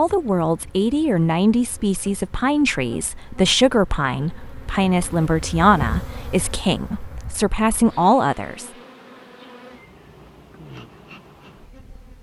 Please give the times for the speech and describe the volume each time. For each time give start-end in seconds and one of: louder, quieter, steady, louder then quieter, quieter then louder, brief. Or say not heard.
0.0-8.7 steady.